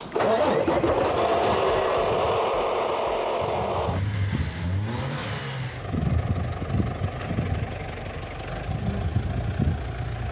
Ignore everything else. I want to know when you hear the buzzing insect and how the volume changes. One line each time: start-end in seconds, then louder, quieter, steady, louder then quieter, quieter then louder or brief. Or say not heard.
0.0-10.2 louder.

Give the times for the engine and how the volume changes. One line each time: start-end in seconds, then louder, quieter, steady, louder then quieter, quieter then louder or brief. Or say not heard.
0.0-10.2 quieter.